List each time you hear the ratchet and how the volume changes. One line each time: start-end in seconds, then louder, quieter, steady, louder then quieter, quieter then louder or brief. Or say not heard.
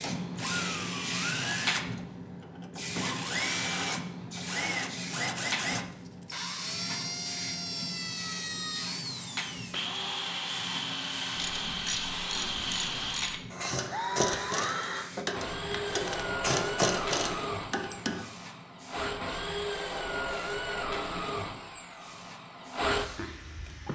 11.3-18.2 louder.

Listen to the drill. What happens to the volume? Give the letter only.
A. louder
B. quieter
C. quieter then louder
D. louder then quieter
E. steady
E.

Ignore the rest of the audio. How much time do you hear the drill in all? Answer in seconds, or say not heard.
24 s.